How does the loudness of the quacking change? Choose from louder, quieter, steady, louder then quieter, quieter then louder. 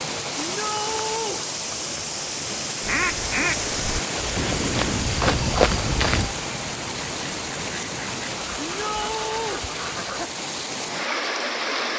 quieter.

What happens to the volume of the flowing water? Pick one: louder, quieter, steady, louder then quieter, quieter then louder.
steady.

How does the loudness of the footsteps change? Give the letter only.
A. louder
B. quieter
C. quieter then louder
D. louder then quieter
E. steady
A.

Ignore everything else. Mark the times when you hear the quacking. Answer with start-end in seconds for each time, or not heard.
2.8-10.3.